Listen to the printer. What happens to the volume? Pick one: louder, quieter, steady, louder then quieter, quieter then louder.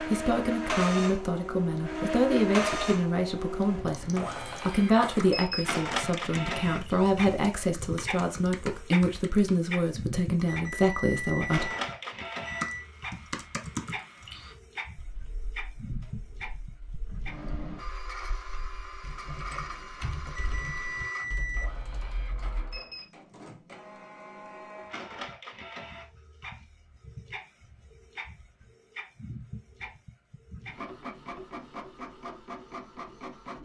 quieter.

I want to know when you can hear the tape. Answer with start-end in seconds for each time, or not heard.
not heard.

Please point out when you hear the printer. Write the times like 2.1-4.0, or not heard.
0.0-33.6.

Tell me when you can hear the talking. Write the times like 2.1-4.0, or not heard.
0.0-11.7.